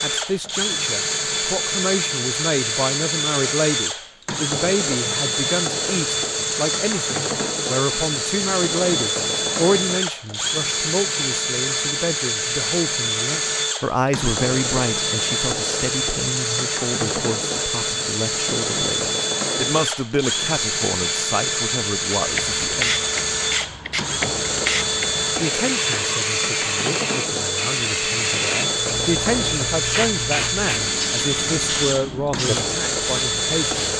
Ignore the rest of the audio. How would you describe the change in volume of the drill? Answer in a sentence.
The volume of the drill stays about the same.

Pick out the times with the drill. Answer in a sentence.
You can hear the drill from 0.0 to 33.9 s.